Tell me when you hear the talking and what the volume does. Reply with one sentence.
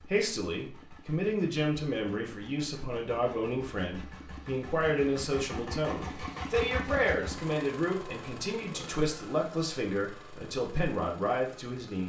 You can hear the talking from 0.0 to 12.0 s, at a steady volume.